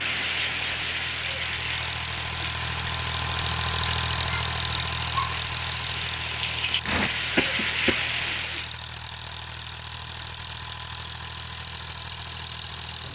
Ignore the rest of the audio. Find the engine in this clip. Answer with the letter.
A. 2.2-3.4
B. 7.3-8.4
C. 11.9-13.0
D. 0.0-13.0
D.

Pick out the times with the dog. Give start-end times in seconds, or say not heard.
not heard.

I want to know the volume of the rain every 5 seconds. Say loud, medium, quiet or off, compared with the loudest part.
loud, loud, off.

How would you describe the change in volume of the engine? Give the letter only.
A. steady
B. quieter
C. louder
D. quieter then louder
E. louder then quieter
E.